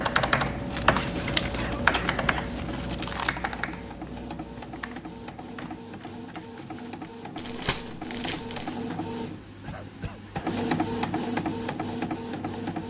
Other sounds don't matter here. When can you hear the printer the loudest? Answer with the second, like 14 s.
11 s.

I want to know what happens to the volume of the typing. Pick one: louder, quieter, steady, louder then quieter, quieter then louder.
quieter.